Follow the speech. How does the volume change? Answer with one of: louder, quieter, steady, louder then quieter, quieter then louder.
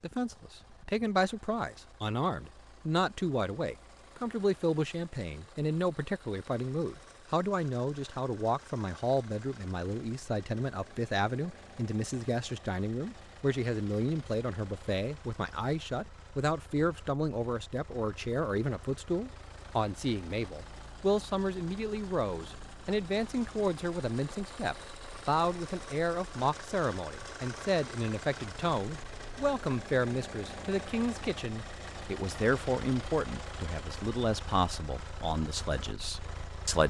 steady.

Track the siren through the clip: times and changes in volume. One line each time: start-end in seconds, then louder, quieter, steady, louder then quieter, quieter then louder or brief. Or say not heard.
not heard.